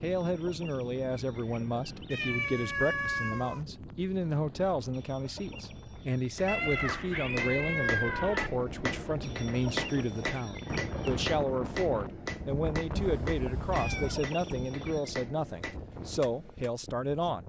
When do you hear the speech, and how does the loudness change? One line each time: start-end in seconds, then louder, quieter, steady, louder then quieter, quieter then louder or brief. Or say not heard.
0.0-17.4 steady.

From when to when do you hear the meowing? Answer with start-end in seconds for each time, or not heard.
2.1-3.6, 6.5-8.5, 12.9-14.3.